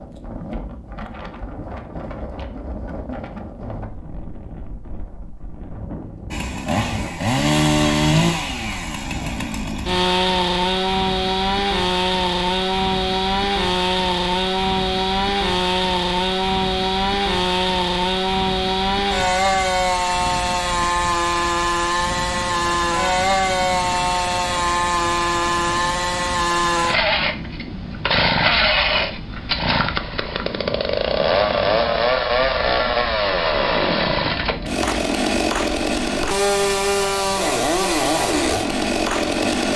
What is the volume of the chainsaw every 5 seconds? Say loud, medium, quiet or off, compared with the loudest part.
off, loud, loud, loud, loud, loud, loud, loud.